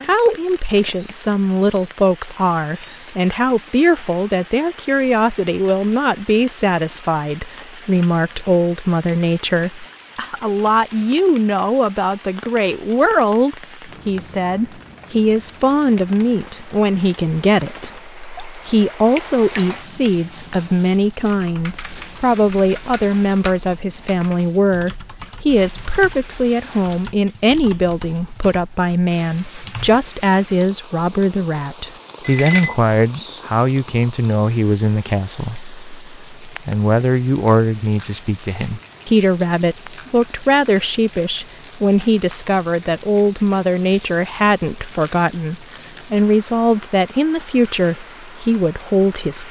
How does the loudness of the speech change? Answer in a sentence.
The loudness of the speech stays about the same.